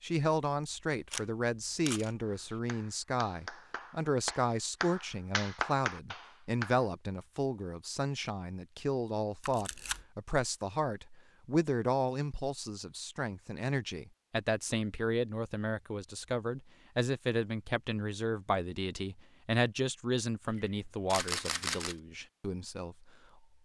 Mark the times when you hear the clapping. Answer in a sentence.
You can hear the clapping from 2.2 to 6.8 s.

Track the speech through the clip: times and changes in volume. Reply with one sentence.
You can hear the speech from 0.0 to 23.1 s, at a steady volume.